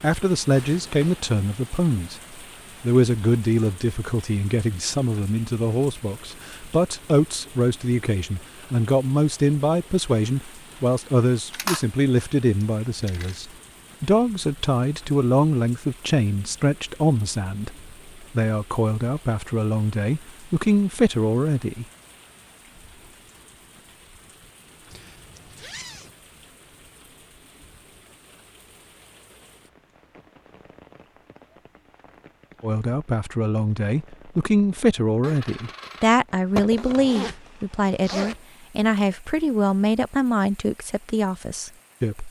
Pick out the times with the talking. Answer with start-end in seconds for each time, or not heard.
0.0-2.1, 2.8-21.9, 32.6-42.2.